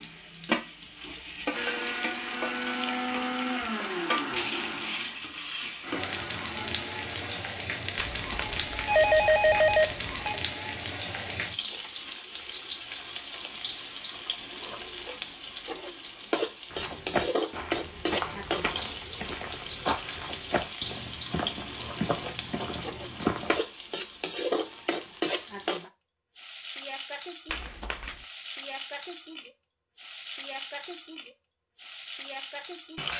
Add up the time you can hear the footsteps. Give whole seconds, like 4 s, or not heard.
7 s.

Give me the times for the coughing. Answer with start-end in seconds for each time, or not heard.
not heard.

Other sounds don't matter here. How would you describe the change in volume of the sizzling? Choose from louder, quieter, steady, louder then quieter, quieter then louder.
steady.